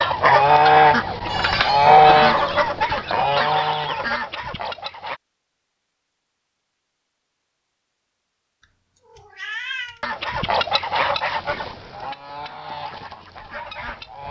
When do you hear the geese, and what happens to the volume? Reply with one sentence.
You can hear the geese from 0.0 to 5.2 s, getting quieter; and from 10.0 to 14.2 s, getting quieter.